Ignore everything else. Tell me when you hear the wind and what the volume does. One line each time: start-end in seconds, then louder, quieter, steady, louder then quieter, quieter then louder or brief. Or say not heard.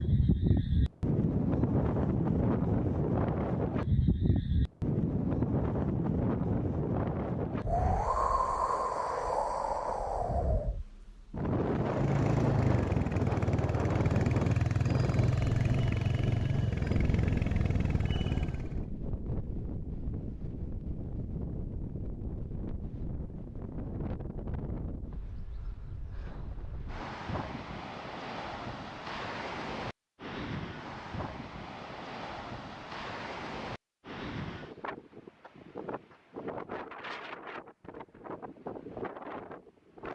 0.0-40.1 quieter.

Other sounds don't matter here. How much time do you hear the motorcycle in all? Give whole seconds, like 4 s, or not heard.
7 s.